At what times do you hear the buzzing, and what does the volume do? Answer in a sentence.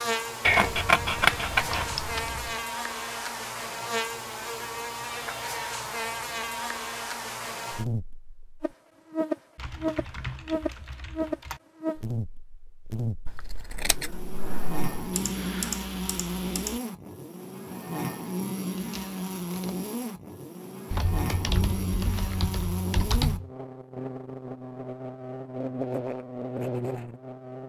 You can hear the buzzing from 0.0 to 27.6 s, at a steady volume.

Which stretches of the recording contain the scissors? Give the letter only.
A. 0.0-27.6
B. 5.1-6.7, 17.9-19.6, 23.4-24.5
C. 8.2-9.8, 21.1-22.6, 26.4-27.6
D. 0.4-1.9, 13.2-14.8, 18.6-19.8
D.